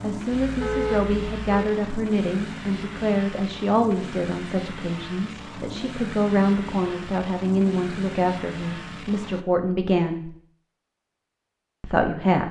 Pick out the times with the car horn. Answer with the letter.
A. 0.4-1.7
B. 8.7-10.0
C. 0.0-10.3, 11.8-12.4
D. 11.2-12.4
A.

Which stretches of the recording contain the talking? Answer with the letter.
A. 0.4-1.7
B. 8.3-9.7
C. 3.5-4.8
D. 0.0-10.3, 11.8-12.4
D.